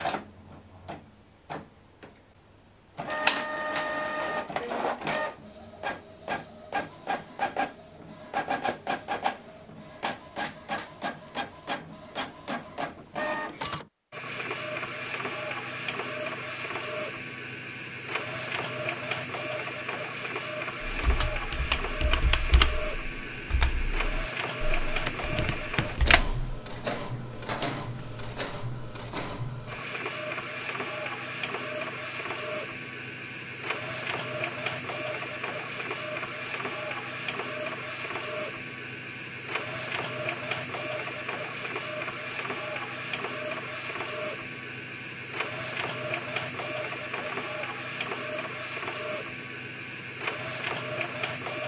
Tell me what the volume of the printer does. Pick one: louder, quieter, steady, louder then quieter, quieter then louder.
steady.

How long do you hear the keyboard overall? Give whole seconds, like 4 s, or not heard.
6 s.